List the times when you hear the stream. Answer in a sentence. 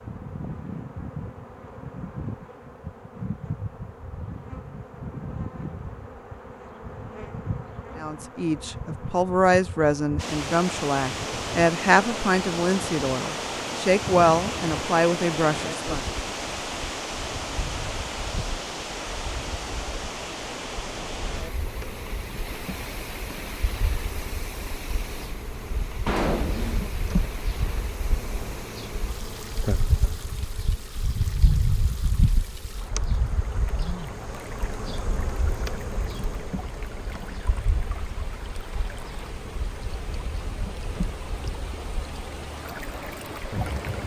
The stream can be heard from 10.2 to 44.0 s.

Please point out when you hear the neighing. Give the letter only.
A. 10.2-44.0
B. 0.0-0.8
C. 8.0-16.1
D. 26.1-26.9
D.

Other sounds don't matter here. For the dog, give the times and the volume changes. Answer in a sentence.
You can't hear the dog here.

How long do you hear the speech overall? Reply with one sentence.
The speech can be heard for 8 seconds in total.